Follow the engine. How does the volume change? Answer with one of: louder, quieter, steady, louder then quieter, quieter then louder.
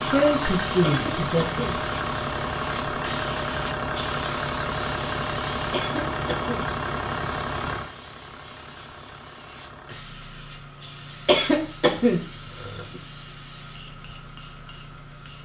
quieter.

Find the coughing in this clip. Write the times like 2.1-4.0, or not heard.
0.8-1.8, 5.7-6.7, 11.2-12.8.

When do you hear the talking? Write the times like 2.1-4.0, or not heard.
0.0-1.6.